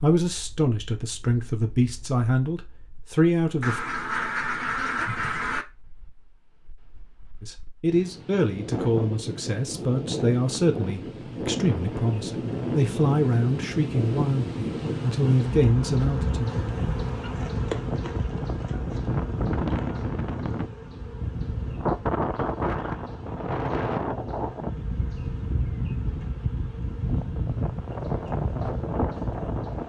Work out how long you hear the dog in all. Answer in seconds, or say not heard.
not heard.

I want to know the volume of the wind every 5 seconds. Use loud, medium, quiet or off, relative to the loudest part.
quiet, medium, loud, loud, loud, loud.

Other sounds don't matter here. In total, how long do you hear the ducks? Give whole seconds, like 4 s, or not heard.
2 s.